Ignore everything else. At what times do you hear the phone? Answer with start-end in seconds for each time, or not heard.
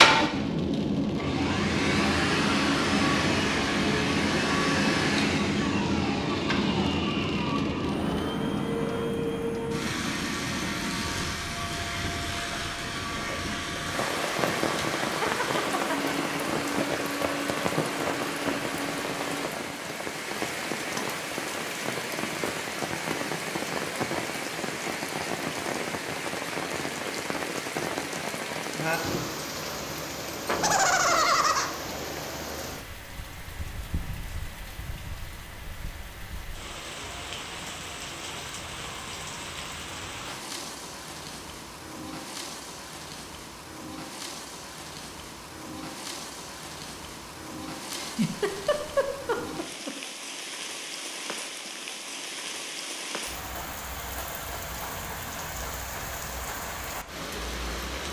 not heard.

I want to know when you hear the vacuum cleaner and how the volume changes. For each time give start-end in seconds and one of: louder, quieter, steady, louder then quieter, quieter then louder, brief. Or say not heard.
0.0-19.5 quieter.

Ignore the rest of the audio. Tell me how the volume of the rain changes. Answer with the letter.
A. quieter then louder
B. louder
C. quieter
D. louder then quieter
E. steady
C.